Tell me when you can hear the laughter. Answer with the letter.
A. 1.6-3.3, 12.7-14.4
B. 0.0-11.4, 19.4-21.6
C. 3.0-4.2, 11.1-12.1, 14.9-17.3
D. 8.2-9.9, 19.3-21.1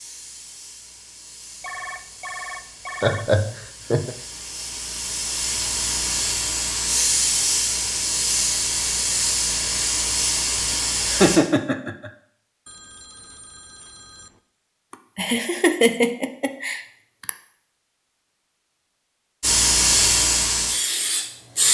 C.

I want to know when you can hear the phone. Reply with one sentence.
You can hear the phone from 1.6 to 3.3 s and from 12.7 to 14.4 s.